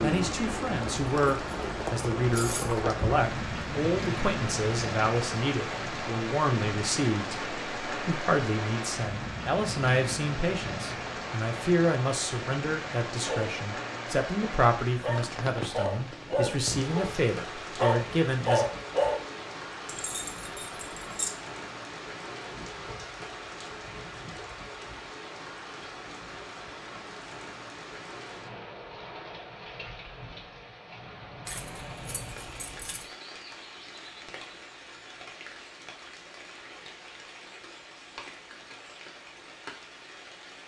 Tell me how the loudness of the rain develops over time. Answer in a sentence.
The volume of the rain goes down.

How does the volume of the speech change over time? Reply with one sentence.
The loudness of the speech stays about the same.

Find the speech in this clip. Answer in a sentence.
You can hear the speech from 0.0 to 18.6 s.